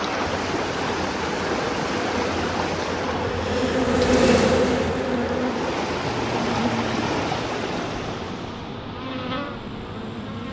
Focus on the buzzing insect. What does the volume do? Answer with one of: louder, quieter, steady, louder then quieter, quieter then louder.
louder then quieter.